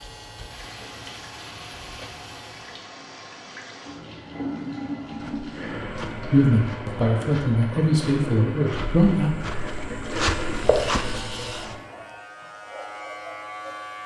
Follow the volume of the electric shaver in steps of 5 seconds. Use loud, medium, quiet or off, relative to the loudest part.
medium, off, loud.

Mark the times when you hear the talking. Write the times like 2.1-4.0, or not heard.
6.3-9.3.